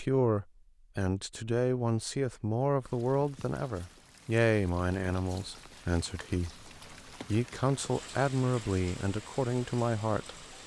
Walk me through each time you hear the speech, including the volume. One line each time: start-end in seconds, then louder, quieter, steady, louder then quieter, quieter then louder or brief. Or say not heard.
0.0-10.3 steady.